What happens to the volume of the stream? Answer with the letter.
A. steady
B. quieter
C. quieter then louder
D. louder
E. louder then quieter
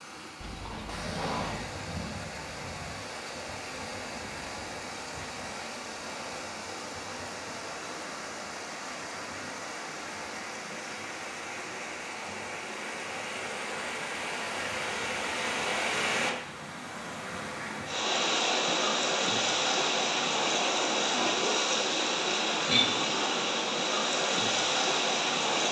D.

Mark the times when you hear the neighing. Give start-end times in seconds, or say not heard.
0.4-1.8.